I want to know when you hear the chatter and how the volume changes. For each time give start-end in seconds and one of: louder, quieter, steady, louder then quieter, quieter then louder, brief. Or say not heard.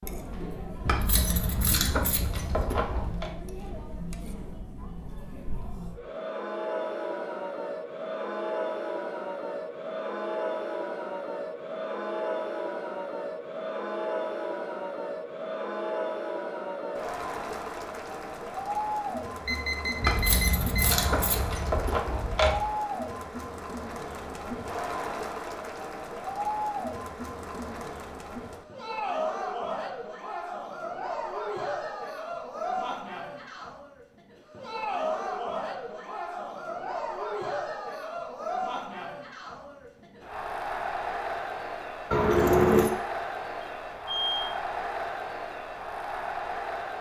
0.0-46.9 steady.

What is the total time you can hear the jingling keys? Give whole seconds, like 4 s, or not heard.
6 s.